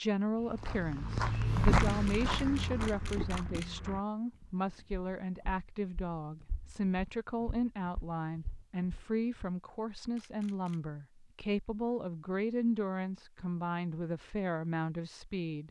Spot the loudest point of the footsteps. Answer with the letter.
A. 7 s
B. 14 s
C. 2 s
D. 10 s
C.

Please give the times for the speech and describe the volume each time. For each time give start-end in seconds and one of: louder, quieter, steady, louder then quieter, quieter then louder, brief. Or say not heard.
0.0-15.6 steady.